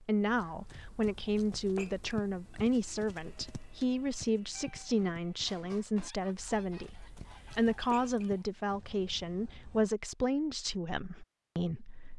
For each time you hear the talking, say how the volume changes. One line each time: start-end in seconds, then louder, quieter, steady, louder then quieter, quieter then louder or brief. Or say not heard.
0.0-12.1 steady.